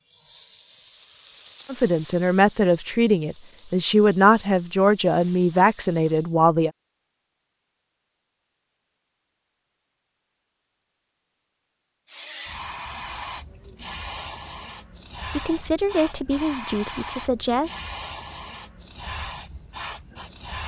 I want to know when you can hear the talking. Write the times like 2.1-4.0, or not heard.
1.6-6.7, 15.3-17.7.